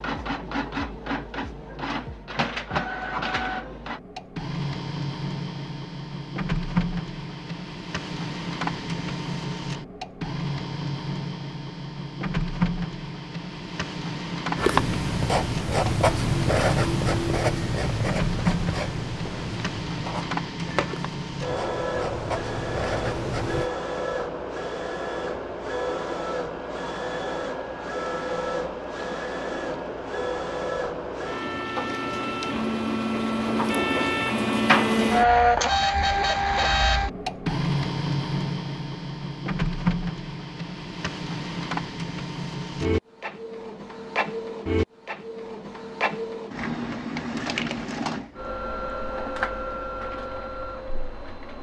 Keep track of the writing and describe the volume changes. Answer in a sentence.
The loudness of the writing goes down.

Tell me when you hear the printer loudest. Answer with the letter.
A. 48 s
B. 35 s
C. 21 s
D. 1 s
B.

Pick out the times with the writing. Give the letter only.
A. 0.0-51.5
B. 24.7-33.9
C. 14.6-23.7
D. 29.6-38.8
C.